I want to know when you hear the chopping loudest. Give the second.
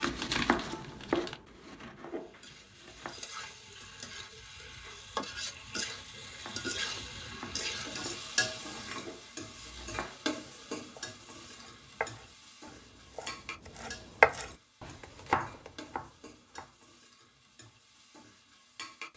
14 s.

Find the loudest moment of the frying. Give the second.
8 s.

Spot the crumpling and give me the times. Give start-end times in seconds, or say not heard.
0.2-1.4.